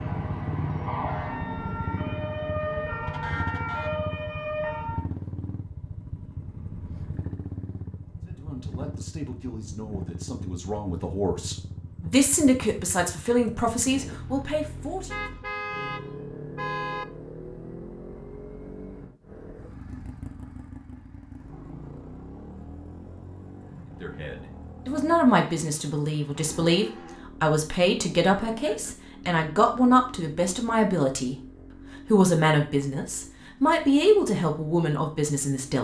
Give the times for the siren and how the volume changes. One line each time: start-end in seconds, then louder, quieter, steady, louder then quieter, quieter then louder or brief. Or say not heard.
0.0-5.0 steady.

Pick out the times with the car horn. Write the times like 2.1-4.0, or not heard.
3.0-4.0, 15.1-17.1, 28.6-29.1.